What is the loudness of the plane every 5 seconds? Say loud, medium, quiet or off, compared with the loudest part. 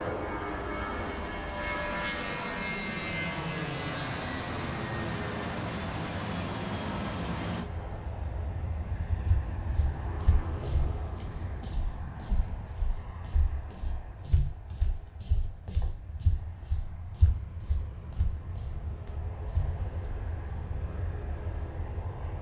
loud, loud, medium, quiet, medium.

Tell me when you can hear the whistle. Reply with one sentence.
The whistle can't be heard in this clip.